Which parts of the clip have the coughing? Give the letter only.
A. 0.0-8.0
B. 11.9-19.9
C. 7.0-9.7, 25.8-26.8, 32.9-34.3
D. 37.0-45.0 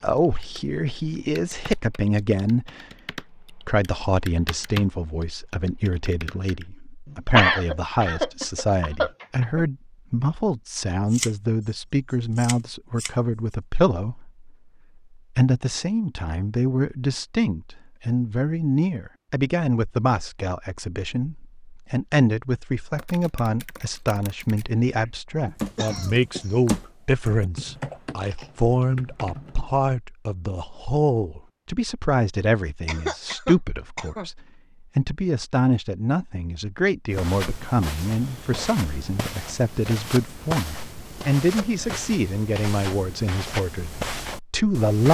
C.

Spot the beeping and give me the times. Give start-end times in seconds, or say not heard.
not heard.